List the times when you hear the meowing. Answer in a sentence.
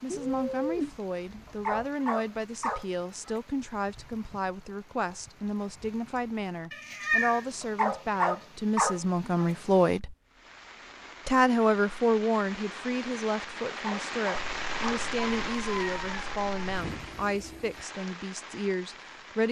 You can hear the meowing from 0.1 to 1.4 s, from 6.7 to 7.5 s and from 14.3 to 16.8 s.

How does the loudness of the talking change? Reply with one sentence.
The volume of the talking goes up, then down.